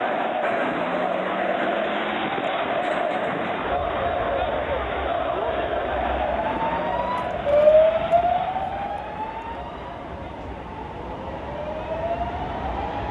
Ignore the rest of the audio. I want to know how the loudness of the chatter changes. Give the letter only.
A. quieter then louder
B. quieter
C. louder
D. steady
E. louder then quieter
B.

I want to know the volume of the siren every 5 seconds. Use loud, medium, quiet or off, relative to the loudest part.
off, loud, medium.